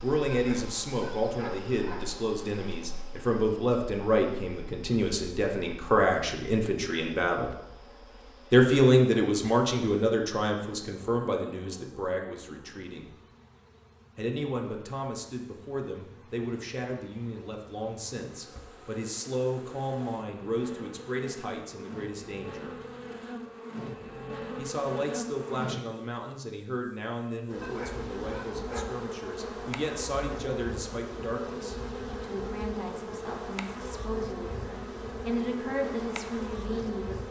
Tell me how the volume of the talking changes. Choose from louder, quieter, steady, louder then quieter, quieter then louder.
quieter.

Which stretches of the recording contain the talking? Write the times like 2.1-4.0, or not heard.
0.0-7.5, 8.5-13.2, 14.2-22.8, 24.6-37.2.